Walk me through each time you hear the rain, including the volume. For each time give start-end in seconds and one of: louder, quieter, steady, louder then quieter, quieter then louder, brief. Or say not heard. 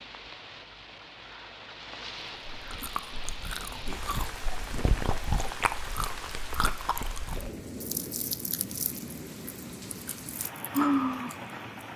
0.0-11.9 steady.